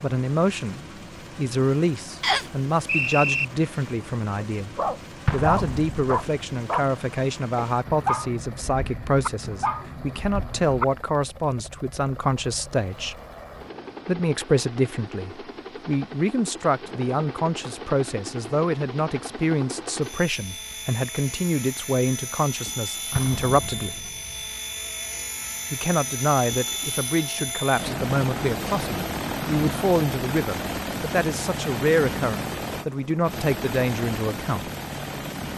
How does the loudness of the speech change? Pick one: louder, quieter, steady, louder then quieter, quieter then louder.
steady.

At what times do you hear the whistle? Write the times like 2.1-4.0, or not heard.
2.2-3.5.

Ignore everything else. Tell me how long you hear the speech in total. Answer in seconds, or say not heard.
32 s.